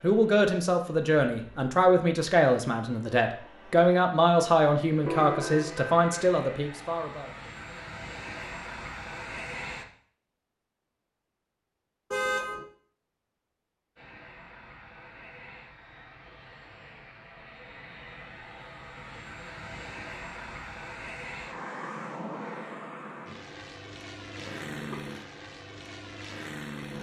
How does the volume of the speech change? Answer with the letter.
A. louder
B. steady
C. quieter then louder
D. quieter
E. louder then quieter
B.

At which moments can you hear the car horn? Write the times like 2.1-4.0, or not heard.
5.0-6.3, 12.1-12.7, 24.4-24.9.